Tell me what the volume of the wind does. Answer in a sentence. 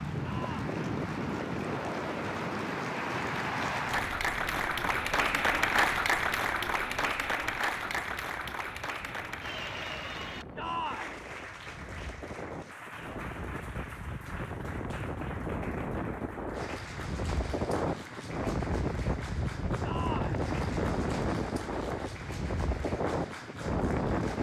The loudness of the wind goes down, then up.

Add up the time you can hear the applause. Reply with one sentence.
You can hear the applause for 24 seconds altogether.